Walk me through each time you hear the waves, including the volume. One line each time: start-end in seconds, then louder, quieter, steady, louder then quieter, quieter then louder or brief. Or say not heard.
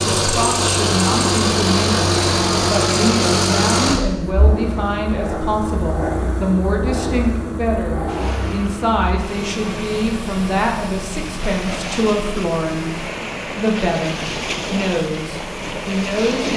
8.1-16.5 louder.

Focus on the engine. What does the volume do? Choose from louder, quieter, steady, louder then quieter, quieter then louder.
quieter.